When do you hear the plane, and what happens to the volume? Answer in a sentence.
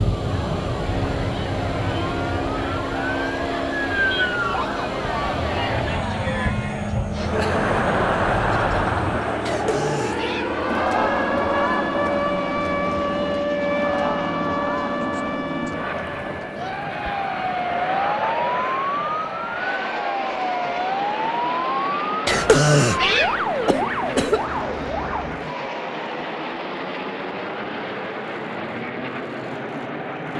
The plane can be heard from 0.0 to 30.3 s, at a steady volume.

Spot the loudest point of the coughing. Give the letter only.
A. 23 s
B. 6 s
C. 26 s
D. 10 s
A.